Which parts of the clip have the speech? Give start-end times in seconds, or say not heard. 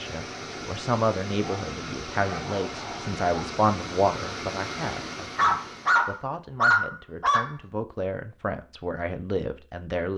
0.0-10.1.